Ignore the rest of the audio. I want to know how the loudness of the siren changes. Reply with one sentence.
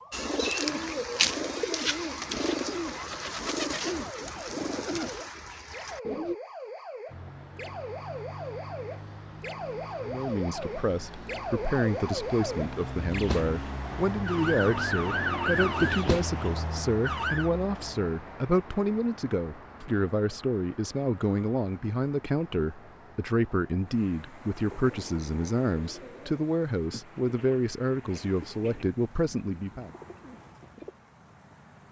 The volume of the siren goes up.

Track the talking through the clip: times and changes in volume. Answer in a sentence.
You can hear the talking from 10.0 to 29.9 s, at a steady volume.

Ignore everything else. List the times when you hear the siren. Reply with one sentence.
You can hear the siren from 0.0 to 17.5 s.